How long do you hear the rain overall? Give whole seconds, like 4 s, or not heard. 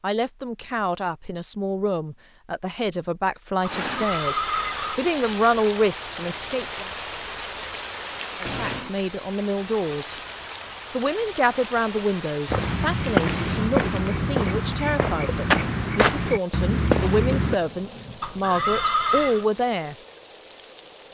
17 s.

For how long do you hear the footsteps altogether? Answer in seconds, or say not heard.
5 s.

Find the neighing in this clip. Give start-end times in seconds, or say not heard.
3.8-5.0, 18.2-19.4.